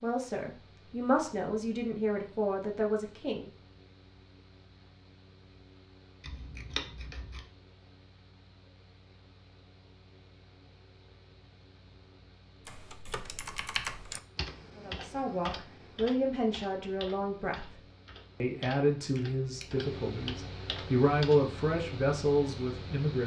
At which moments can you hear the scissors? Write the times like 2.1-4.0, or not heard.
6.2-7.5, 19.1-19.8.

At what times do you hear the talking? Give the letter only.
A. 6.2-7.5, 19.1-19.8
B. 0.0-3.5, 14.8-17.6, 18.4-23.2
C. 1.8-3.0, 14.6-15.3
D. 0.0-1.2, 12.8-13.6
B.